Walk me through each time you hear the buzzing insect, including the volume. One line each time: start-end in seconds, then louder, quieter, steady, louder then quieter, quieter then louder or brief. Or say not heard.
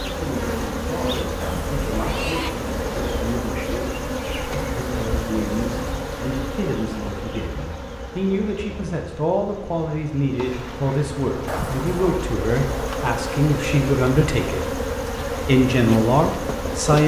0.0-17.0 quieter then louder.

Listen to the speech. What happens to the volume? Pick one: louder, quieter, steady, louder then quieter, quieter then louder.
louder.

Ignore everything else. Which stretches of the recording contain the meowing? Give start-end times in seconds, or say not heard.
1.4-2.5, 11.4-12.2.